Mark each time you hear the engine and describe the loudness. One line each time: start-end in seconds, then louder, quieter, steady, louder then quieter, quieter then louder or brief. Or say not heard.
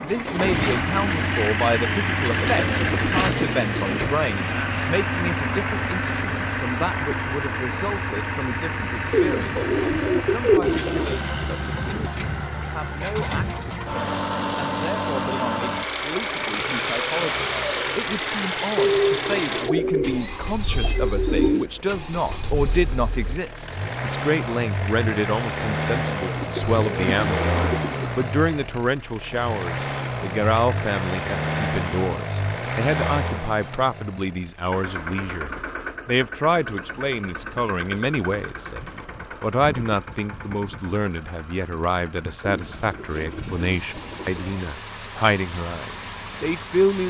0.0-47.0 quieter.